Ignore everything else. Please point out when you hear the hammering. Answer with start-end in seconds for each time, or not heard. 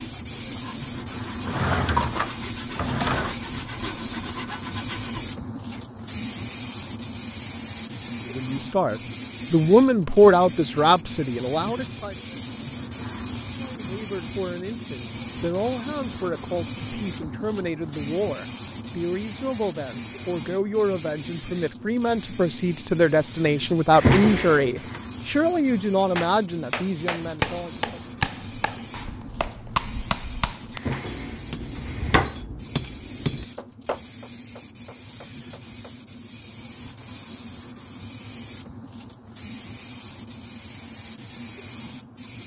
26.1-35.9.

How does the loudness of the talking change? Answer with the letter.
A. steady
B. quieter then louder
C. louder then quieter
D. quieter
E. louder
B.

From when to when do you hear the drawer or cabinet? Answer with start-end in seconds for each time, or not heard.
1.4-3.4, 23.9-25.0, 30.8-32.4.